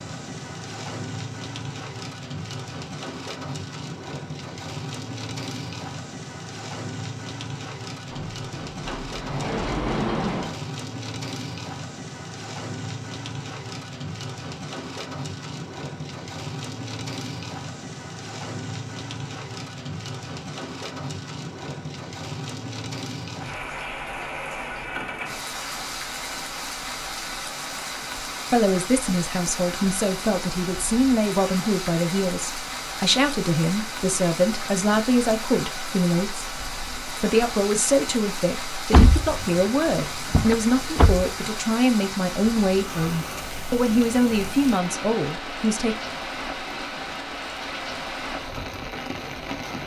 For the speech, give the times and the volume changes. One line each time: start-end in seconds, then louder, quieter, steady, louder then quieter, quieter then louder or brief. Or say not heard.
28.5-46.0 steady.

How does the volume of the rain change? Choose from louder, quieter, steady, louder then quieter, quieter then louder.
steady.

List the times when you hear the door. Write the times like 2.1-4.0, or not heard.
8.1-10.6, 38.9-41.3.